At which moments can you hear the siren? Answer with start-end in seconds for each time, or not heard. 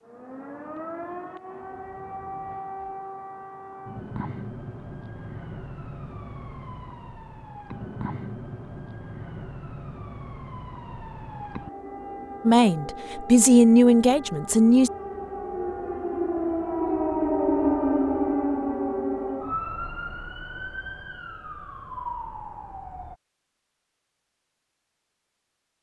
0.0-23.1.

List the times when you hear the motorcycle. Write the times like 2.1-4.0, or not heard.
not heard.